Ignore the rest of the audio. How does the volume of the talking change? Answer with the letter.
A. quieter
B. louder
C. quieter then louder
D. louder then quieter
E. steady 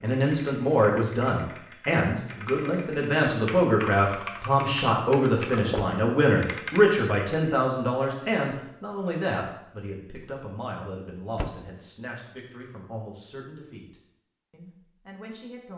A.